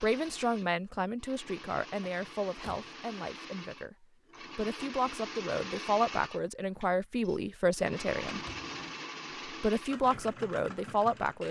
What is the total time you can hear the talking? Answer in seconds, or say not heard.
10 s.